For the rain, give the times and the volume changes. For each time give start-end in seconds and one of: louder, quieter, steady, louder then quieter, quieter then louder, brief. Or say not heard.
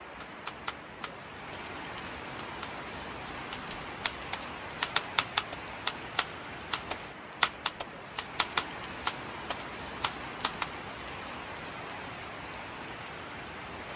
0.0-13.9 steady.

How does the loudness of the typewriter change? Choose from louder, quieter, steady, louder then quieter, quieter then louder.
louder.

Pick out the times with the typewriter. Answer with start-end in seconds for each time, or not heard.
0.2-10.7.